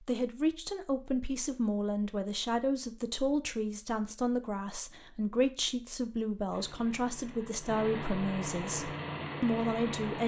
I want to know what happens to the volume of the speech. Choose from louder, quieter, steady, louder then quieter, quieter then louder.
steady.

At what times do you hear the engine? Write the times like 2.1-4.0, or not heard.
6.5-10.2.